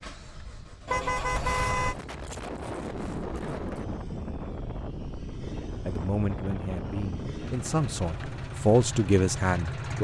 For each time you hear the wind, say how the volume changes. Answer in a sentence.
The wind can be heard from 0.0 to 9.9 s, getting louder then quieter.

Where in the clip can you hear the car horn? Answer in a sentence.
The car horn can be heard from 0.8 to 1.9 s.